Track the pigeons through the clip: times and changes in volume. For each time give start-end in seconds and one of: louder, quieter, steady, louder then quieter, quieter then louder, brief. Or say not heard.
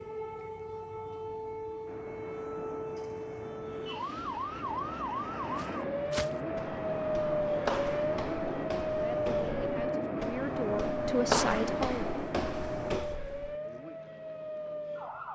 not heard.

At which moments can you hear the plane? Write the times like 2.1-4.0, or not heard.
1.9-12.9.